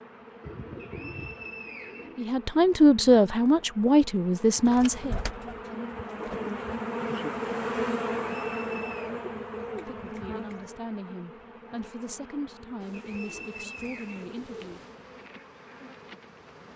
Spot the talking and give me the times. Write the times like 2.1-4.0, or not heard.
2.1-6.0, 9.8-14.8.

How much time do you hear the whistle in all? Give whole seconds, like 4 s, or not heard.
4 s.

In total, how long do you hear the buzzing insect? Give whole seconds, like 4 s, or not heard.
17 s.